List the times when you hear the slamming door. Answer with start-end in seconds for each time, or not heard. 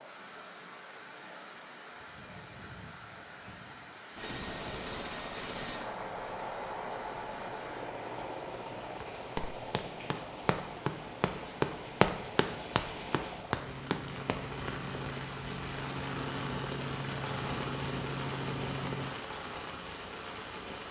not heard.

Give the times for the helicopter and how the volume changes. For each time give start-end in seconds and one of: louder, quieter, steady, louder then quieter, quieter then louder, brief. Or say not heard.
4.1-19.1 quieter then louder.